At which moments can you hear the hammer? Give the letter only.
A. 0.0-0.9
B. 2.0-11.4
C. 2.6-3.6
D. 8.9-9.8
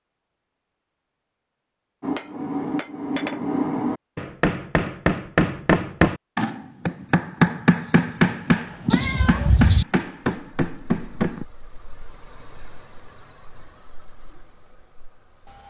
B.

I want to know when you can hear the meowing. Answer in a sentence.
The meowing can be heard from 8.9 to 9.8 s.